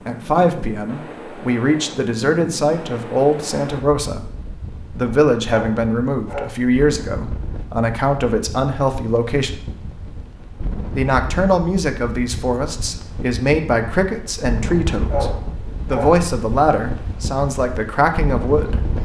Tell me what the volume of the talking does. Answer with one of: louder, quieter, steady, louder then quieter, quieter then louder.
steady.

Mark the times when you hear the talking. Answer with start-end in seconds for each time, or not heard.
0.1-9.6, 10.9-18.9.